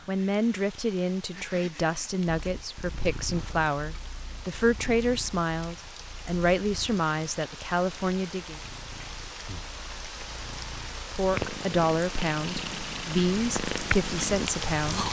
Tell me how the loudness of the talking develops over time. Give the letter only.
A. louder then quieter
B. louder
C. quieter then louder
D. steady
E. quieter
D.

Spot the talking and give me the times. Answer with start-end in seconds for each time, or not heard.
0.1-8.6, 11.1-15.0.